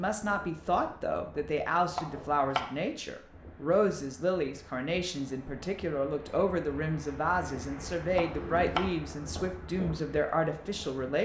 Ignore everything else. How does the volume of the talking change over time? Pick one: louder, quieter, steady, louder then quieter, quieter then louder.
steady.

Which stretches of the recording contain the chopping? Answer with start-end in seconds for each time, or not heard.
1.9-2.8, 8.2-8.9.